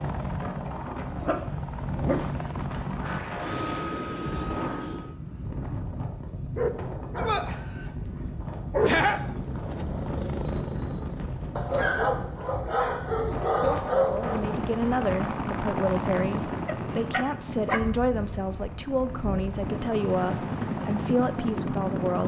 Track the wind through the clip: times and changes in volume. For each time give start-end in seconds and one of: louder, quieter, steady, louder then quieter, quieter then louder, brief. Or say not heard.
0.0-22.2 steady.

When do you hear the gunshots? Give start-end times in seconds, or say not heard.
not heard.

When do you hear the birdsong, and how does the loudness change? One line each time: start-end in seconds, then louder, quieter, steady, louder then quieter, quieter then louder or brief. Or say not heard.
not heard.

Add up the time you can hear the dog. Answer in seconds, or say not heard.
8 s.